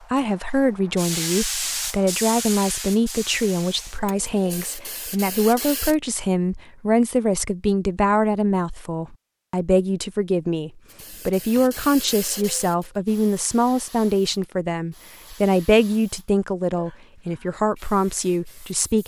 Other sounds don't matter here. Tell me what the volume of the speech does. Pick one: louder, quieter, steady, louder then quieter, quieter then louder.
steady.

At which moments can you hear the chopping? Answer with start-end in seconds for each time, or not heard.
not heard.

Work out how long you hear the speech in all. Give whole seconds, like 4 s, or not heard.
19 s.